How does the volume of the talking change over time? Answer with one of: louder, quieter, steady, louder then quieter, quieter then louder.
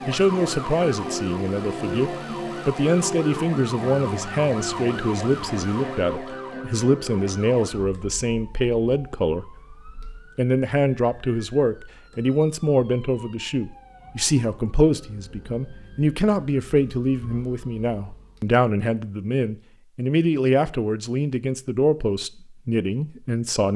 steady.